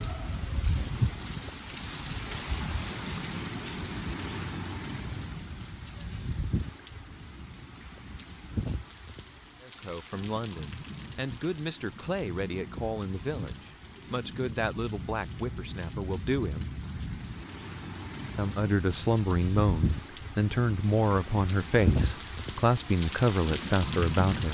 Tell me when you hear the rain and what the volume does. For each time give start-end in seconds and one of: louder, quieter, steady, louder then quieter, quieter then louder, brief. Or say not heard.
0.0-24.4 quieter then louder.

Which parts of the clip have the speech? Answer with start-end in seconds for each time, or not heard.
9.6-16.8, 18.4-24.4.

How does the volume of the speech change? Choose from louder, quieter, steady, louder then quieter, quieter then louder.
louder.